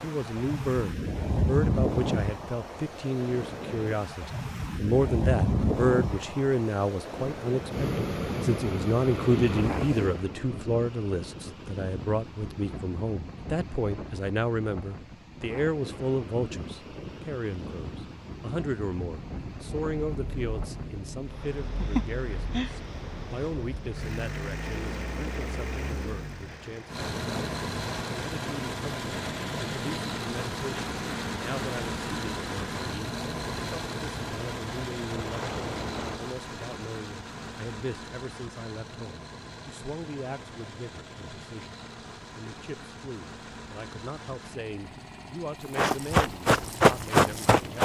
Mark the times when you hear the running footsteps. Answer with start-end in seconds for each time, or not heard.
45.8-47.8.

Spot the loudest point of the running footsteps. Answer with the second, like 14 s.
47 s.